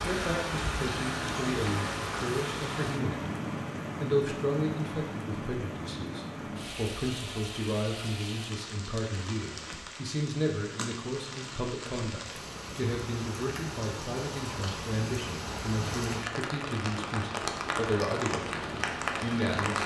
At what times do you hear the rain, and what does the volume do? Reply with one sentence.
You can hear the rain from 0.0 to 19.8 s, getting quieter then louder.